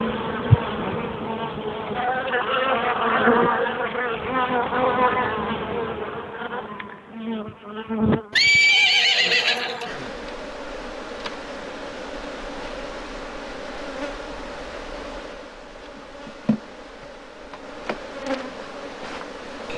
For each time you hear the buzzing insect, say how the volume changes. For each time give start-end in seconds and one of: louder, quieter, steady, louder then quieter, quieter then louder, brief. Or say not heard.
0.0-19.7 quieter.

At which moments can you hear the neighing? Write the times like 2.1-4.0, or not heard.
8.3-9.8.